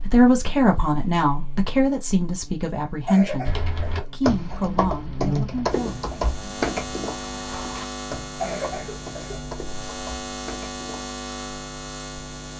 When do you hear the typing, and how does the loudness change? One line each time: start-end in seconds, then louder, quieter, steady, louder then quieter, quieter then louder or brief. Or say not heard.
3.5-11.2 quieter.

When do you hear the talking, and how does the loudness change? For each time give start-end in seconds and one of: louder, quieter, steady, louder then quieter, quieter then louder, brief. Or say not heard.
0.0-6.0 quieter.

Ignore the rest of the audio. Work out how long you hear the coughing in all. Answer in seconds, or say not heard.
3 s.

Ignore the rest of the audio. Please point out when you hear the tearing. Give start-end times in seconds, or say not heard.
not heard.